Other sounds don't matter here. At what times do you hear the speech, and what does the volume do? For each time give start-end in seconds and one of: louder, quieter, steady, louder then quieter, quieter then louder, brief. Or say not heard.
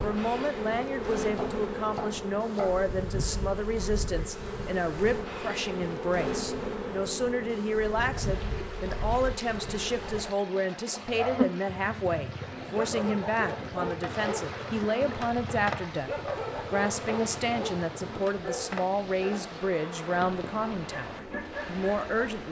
0.0-16.1 steady
16.7-22.4 steady.